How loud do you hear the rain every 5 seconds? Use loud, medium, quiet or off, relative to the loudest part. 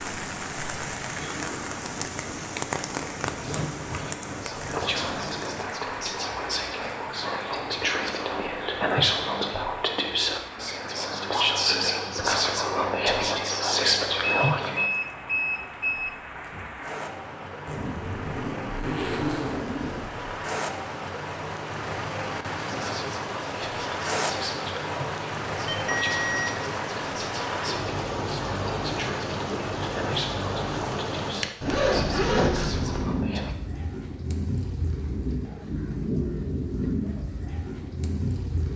loud, medium, medium, medium, loud, loud, loud, loud.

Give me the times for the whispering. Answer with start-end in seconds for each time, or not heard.
3.9-14.8, 22.6-33.5.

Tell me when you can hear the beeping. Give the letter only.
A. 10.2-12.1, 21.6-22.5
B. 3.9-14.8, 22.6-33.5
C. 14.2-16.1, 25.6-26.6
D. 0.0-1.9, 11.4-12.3
C.